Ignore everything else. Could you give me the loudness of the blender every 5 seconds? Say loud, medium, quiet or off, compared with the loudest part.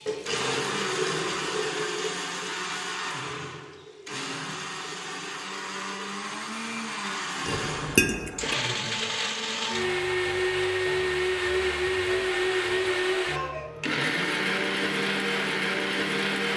medium, medium, loud, loud.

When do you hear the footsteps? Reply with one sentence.
You can't hear the footsteps here.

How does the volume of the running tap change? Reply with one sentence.
The volume of the running tap goes down.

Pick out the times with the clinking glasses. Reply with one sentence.
The clinking glasses can be heard from 7.5 to 8.6 s.